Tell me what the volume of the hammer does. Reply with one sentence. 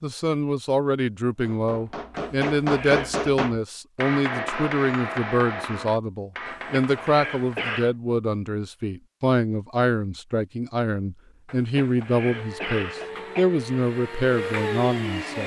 The loudness of the hammer goes down.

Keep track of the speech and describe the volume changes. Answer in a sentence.
The volume of the speech stays about the same.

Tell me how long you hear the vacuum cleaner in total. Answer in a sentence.
You can hear the vacuum cleaner for 3 seconds altogether.